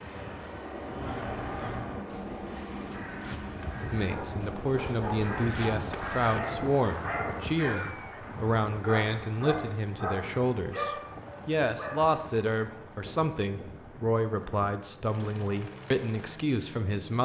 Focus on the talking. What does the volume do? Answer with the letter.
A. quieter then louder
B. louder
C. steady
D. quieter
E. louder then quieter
C.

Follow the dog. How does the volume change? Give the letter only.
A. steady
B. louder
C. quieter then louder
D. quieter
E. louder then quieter
A.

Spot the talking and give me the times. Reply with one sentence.
The talking can be heard from 3.9 to 17.2 s.